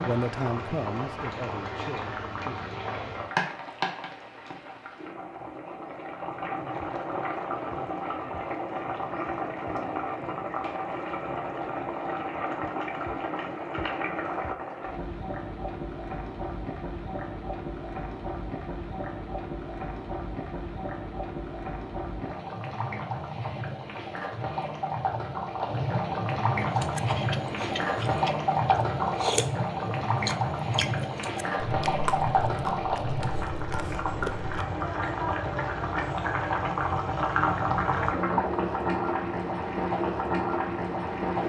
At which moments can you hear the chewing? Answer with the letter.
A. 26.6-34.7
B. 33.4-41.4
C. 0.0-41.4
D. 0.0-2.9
A.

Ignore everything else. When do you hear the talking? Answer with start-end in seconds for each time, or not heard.
0.0-2.9.